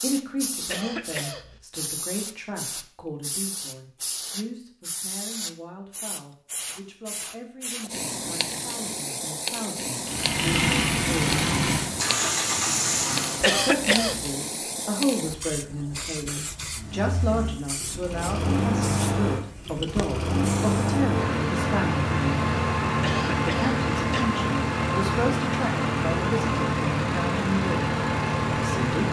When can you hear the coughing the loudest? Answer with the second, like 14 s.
14 s.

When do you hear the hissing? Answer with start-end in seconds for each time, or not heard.
0.0-21.0.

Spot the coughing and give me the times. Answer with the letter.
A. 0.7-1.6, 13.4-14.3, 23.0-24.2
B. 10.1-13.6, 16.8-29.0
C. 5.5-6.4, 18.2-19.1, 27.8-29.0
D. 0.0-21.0
A.